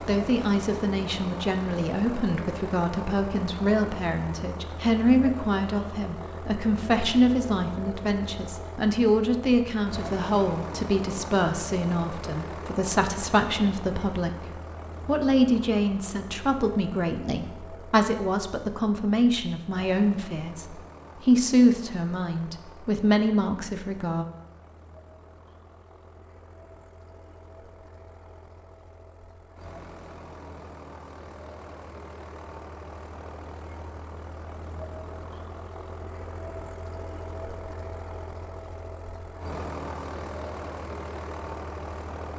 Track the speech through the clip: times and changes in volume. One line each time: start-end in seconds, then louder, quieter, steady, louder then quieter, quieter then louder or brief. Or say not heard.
0.0-24.2 steady.